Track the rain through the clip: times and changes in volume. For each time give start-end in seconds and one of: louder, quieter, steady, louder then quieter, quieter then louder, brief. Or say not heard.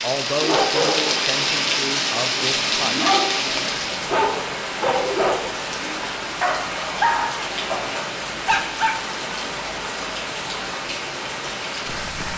0.0-12.3 quieter.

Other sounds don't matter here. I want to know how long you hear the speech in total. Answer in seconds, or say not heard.
3 s.